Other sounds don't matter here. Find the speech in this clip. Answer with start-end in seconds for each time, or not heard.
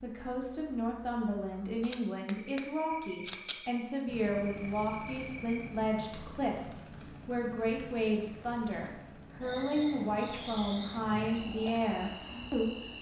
0.0-12.9.